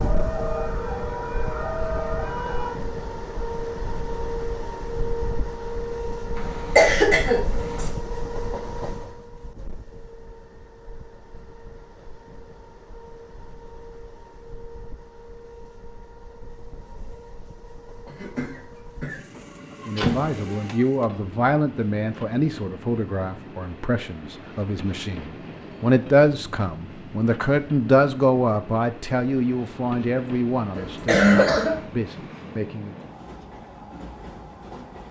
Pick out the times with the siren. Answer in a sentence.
You can hear the siren from 0.0 to 2.8 s.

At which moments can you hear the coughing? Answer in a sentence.
The coughing can be heard from 6.3 to 7.9 s, from 18.1 to 19.2 s and from 30.8 to 31.8 s.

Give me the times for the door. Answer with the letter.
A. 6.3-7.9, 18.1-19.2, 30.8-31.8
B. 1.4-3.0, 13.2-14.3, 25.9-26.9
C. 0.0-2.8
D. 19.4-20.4
D.